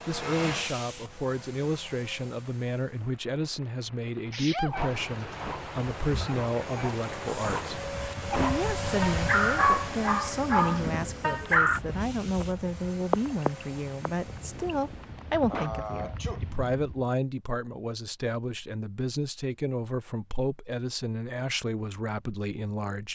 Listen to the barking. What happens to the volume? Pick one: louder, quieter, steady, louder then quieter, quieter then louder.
louder.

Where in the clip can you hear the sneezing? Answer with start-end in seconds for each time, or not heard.
4.3-5.0, 15.5-16.4.